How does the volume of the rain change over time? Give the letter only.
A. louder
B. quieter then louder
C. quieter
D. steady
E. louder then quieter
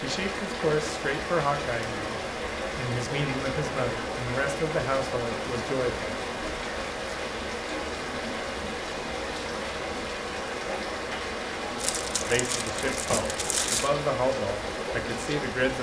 D.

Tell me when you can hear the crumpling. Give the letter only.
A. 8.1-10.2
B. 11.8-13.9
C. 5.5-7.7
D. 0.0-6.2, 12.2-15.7
B.